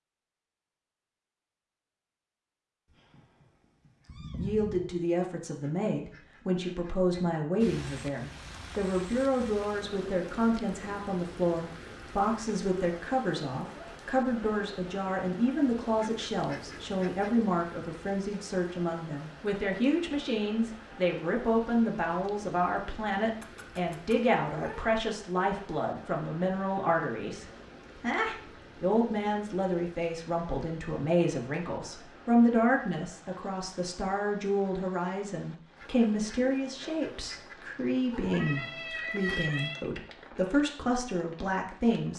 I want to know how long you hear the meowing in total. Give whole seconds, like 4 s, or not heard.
5 s.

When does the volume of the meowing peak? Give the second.
39 s.